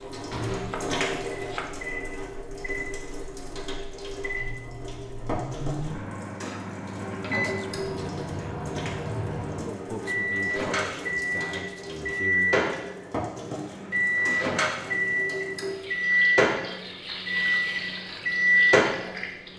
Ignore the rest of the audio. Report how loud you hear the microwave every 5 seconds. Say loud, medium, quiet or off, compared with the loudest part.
quiet, medium, loud, loud.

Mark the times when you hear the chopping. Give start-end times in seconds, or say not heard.
0.0-2.1.